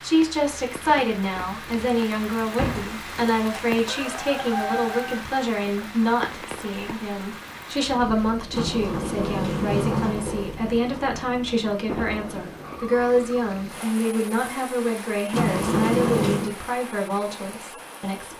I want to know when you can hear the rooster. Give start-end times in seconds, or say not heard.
3.9-5.2.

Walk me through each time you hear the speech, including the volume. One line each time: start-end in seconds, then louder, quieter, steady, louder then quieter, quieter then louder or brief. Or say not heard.
0.0-18.3 steady.